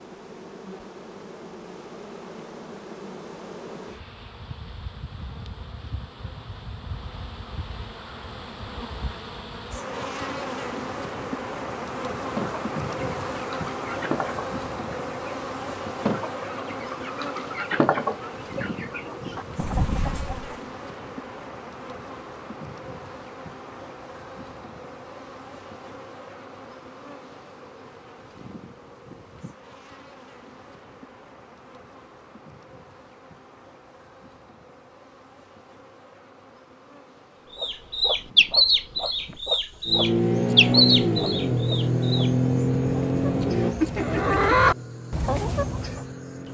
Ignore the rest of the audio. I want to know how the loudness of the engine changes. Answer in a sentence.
The loudness of the engine goes down.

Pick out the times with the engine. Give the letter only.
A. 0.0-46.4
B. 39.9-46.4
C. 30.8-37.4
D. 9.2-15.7
B.